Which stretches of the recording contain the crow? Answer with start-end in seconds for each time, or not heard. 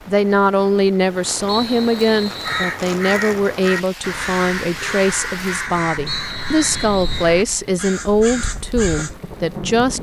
1.6-9.2.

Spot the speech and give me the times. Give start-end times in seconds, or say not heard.
0.1-9.9.